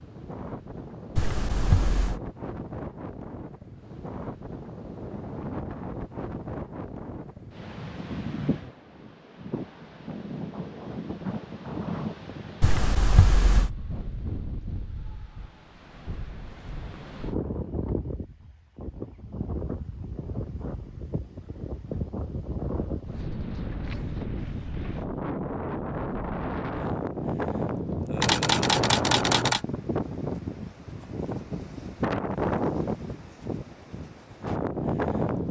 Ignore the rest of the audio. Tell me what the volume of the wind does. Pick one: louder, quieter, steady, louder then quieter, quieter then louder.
louder.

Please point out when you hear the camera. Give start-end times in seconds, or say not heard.
1.1-2.2, 12.6-13.7, 28.2-29.6.